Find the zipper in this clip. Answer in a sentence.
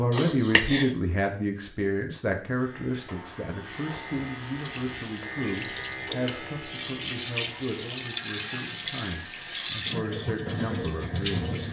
The zipper can't be heard in this clip.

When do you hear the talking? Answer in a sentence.
You can hear the talking from 0.0 to 11.6 s.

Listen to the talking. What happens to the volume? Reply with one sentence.
The volume of the talking goes down.